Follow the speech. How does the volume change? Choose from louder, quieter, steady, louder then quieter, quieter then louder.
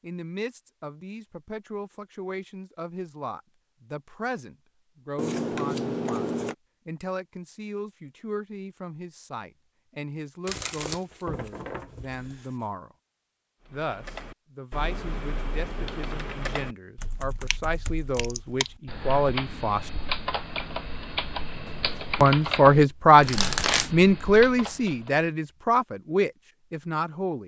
louder.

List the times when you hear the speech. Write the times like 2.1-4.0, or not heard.
0.0-12.9, 13.7-19.9, 22.2-27.4.